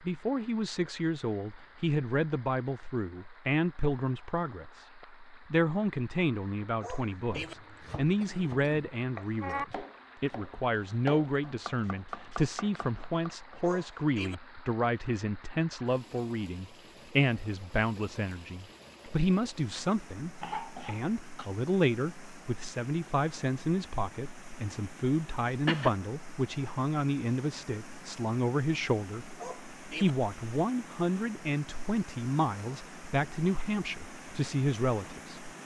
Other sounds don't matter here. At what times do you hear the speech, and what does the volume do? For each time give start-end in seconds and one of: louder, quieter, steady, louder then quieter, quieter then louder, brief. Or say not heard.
0.0-35.5 steady.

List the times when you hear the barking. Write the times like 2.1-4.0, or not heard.
6.8-7.5, 13.6-14.3, 29.4-30.1.